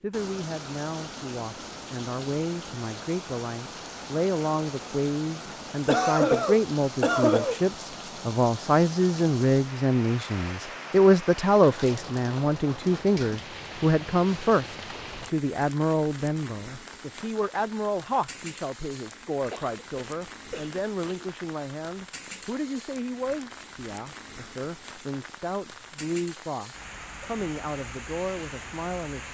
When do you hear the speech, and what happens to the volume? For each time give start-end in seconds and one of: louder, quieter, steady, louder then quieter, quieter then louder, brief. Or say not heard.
0.0-29.2 louder then quieter.